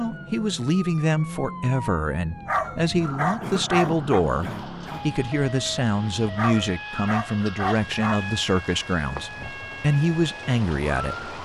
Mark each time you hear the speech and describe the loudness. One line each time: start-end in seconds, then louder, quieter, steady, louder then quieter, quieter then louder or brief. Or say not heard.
0.0-11.3 steady.